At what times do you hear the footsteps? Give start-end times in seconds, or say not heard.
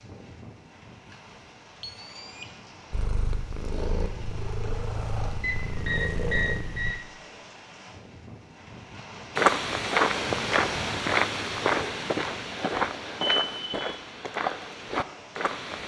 9.3-15.8.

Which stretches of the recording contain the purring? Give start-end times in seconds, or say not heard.
2.9-7.0.